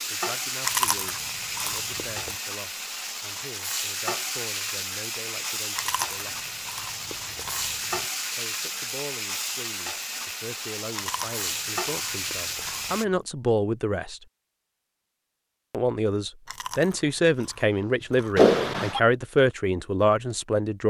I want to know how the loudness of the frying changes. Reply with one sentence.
The loudness of the frying stays about the same.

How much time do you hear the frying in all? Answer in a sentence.
You can hear the frying for 13 seconds altogether.